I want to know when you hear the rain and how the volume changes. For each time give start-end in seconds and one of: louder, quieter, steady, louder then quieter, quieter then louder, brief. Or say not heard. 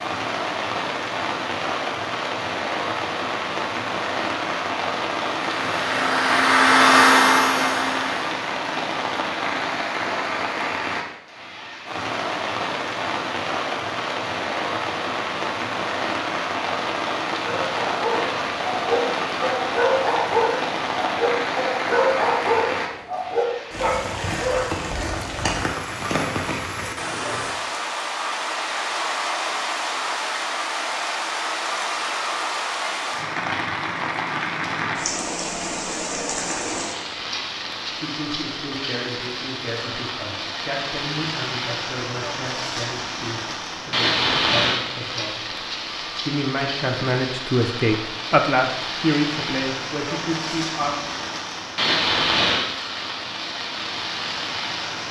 0.0-55.0 steady.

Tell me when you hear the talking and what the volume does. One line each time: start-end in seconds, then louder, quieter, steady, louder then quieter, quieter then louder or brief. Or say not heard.
37.9-45.5 steady
46.2-51.0 louder then quieter.